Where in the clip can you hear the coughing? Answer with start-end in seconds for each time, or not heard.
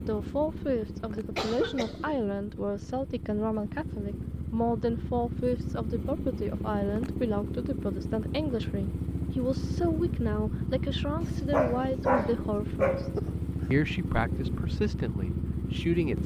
1.1-2.6, 13.2-13.7.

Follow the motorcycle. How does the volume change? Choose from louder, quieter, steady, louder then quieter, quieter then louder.
louder.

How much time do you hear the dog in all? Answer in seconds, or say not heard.
2 s.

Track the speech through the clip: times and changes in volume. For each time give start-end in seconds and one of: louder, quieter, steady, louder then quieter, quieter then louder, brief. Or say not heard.
0.0-16.2 steady.